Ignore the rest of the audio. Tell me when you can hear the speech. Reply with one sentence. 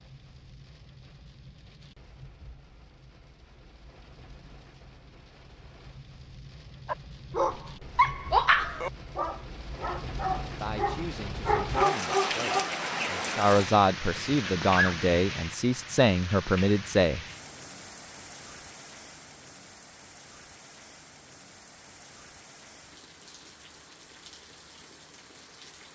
You can hear the speech from 10.6 to 17.2 s.